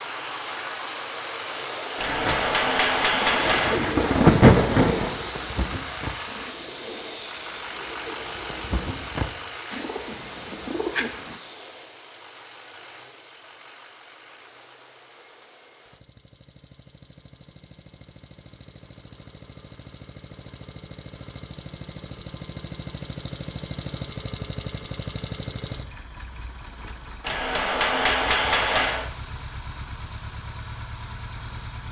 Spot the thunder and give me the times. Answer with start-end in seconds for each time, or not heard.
2.0-5.2.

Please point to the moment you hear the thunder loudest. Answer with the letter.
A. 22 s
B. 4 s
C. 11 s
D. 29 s
B.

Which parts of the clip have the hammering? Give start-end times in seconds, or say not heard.
1.9-3.8, 27.2-29.1.